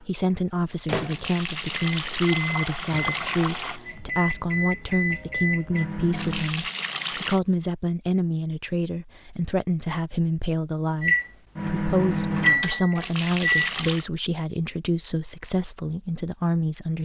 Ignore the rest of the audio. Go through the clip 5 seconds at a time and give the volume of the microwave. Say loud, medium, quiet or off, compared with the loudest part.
medium, medium, loud, off.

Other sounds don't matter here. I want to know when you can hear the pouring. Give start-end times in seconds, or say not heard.
1.0-3.8, 6.1-7.4, 12.9-14.1.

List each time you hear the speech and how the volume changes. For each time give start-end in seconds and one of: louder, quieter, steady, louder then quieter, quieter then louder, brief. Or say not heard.
0.0-16.9 steady.